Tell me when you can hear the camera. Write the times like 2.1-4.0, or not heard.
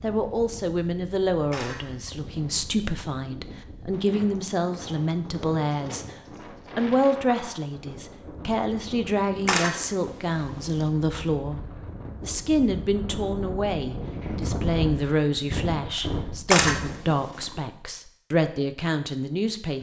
1.5-2.9, 9.4-10.8, 16.5-17.6.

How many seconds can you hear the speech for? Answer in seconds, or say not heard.
19 s.